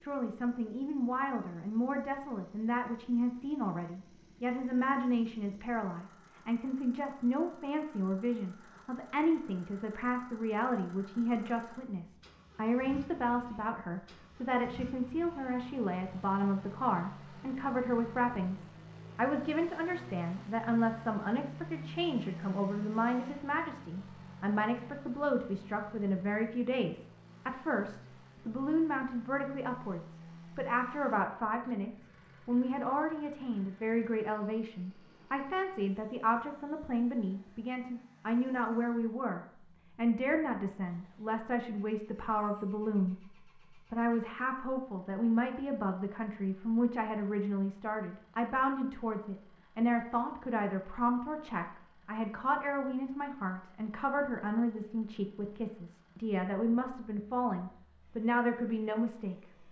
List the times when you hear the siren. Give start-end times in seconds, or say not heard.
not heard.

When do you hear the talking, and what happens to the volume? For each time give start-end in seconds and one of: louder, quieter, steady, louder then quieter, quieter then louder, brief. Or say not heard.
0.0-43.2 steady
43.9-59.4 steady.